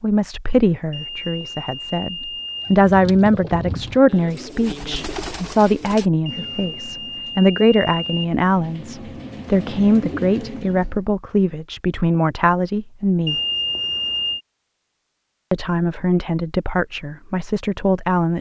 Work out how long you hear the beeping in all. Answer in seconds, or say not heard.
5 s.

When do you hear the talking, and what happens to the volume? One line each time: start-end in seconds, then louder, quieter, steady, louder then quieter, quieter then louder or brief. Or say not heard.
0.0-13.3 steady
15.5-18.3 brief.